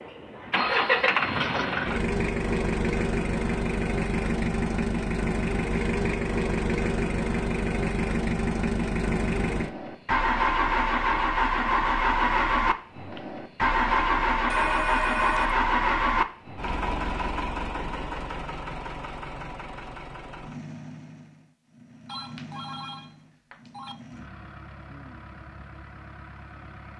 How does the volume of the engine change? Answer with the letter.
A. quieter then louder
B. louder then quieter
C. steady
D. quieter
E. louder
D.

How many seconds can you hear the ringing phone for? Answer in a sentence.
The ringing phone can be heard for 4 seconds in total.